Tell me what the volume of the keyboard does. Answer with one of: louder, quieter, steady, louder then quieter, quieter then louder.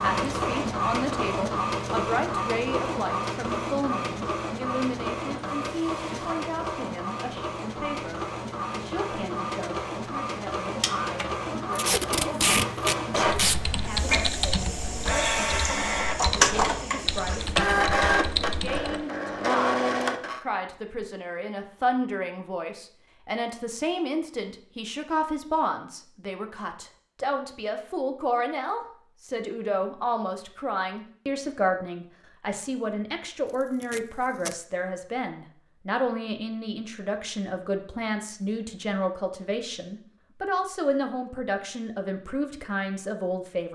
quieter then louder.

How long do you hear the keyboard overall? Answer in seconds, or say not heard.
6 s.